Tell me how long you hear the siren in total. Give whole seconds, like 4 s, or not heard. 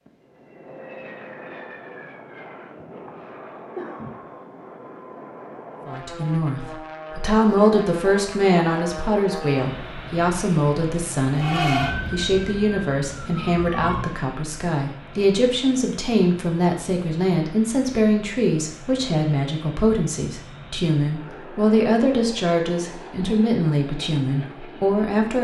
3 s.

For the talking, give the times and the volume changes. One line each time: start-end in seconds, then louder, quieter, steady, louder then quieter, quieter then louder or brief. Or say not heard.
5.8-25.3 steady.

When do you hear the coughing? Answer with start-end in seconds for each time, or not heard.
2.8-4.2.